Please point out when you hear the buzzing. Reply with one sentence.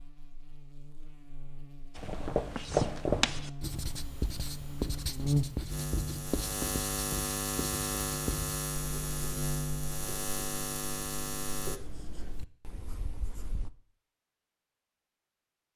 You can hear the buzzing from 0.0 to 11.8 s.